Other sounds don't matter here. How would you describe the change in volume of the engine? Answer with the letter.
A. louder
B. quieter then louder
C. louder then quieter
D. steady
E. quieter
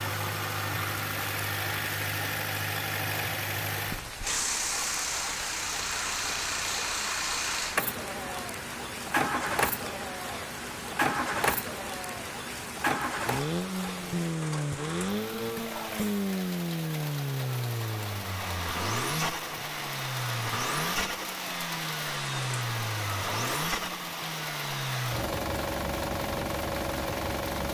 D.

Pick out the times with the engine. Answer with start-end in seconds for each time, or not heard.
0.0-27.6.